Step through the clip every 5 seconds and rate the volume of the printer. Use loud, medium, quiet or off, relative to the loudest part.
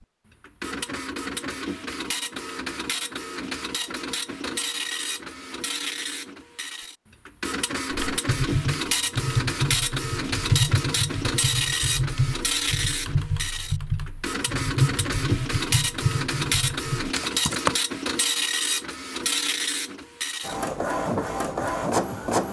medium, loud, loud, loud, loud.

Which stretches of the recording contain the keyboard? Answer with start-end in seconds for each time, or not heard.
7.9-17.8.